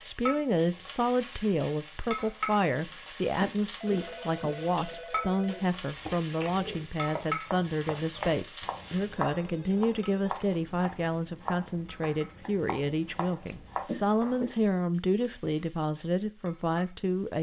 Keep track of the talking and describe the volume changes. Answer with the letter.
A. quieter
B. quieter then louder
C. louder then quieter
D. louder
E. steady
E.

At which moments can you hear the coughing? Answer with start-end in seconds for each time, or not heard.
3.4-5.0, 13.8-14.6.